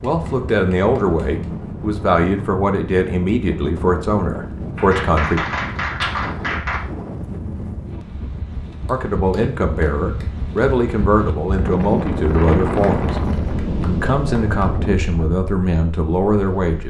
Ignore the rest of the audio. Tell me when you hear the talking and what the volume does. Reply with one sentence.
The talking can be heard from 0.0 to 5.4 s, at a steady volume; and from 8.8 to 16.8 s, at a steady volume.